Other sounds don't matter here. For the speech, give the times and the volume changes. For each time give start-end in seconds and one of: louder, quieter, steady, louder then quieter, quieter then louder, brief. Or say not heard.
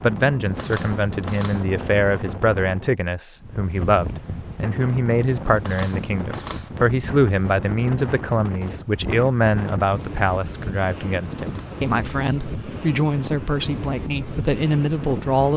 0.0-15.5 steady.